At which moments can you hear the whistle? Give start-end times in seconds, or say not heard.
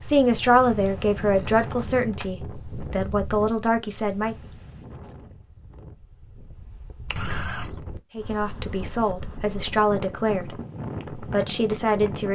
not heard.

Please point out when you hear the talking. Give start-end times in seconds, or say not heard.
0.0-4.3, 8.2-10.6, 11.2-12.3.